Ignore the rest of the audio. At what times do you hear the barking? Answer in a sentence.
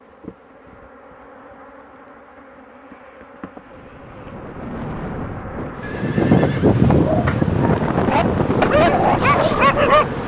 The barking can be heard from 7.0 to 10.1 s.